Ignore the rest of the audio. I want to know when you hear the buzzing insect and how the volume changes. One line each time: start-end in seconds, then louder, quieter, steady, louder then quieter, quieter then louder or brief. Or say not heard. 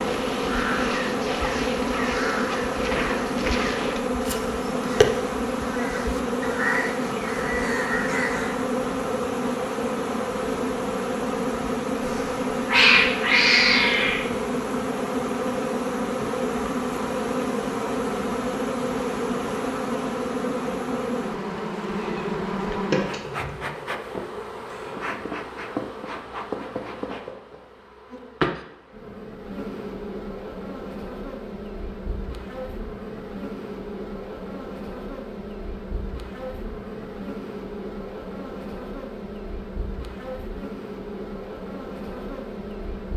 0.0-43.1 quieter.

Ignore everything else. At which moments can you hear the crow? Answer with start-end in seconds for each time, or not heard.
0.0-8.7.